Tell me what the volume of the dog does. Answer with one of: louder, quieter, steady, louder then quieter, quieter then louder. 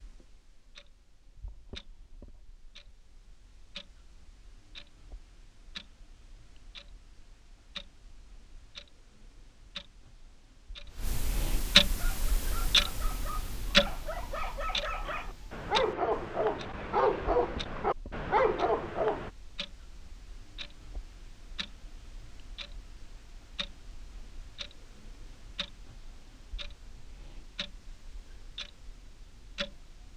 louder.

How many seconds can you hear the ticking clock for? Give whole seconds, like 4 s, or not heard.
30 s.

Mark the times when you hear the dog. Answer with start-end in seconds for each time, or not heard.
11.9-19.3.